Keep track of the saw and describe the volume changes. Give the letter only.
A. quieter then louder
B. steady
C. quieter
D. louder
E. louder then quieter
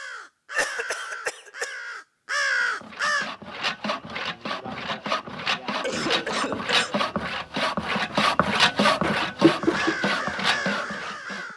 D.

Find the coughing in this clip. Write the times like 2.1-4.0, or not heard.
0.5-1.8, 5.8-7.0.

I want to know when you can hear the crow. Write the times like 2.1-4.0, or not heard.
0.0-3.3, 9.6-11.5.